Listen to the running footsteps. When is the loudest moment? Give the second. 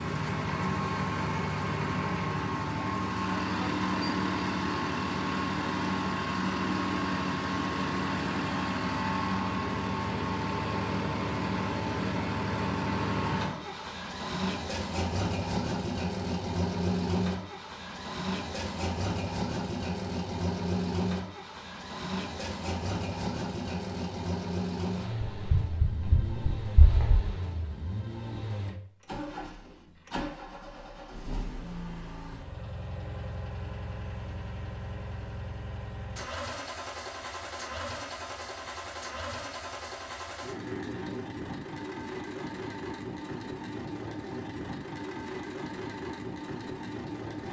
26 s.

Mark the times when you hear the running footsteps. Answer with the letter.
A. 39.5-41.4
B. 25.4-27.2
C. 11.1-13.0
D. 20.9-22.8
B.